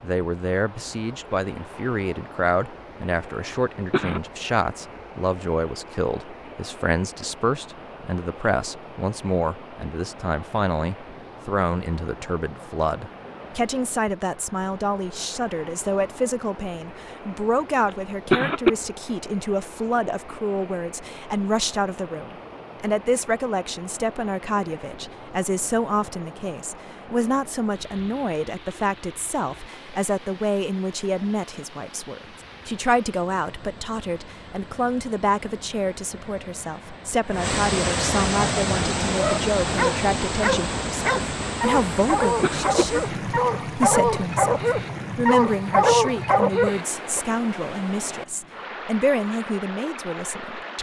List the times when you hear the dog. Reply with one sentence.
The dog can be heard from 38.6 to 47.2 s.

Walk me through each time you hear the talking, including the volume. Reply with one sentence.
You can hear the talking from 0.0 to 50.7 s, at a steady volume.